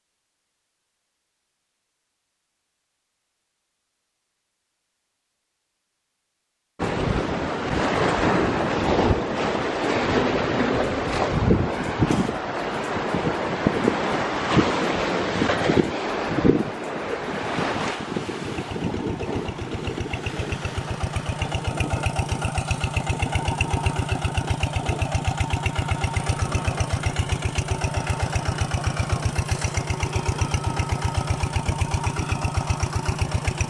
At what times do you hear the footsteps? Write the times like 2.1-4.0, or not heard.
not heard.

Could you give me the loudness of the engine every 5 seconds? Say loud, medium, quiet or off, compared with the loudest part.
off, off, off, medium, loud, loud, loud.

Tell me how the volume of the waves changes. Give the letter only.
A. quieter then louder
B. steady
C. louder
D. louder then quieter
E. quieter
E.